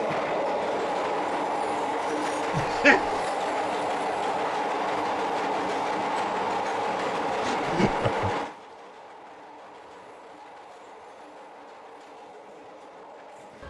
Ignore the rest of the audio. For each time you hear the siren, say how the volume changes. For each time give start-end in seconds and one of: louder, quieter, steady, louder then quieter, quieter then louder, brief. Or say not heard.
not heard.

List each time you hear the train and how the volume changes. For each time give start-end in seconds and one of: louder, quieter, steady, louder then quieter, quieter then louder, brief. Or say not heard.
0.0-13.6 quieter.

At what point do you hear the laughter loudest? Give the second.
3 s.